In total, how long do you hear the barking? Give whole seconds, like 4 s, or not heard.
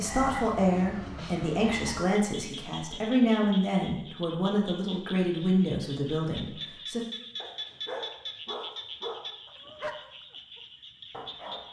4 s.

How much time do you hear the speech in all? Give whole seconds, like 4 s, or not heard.
7 s.